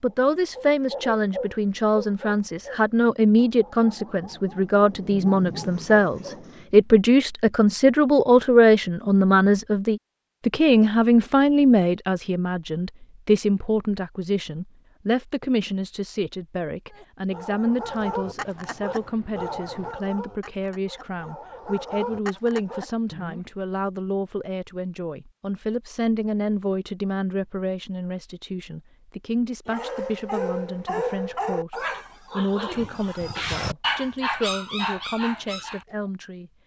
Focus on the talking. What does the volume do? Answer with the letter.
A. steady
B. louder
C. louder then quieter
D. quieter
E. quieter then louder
D.